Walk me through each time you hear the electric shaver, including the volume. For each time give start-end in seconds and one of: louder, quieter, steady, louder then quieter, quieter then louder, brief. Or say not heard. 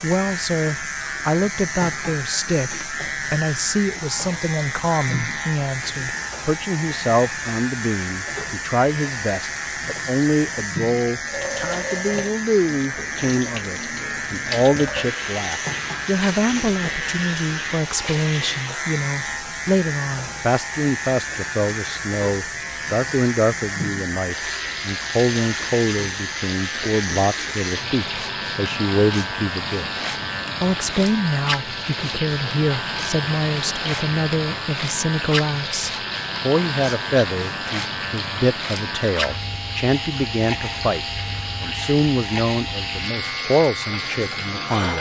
0.0-44.9 steady.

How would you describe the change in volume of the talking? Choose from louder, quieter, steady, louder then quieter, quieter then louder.
steady.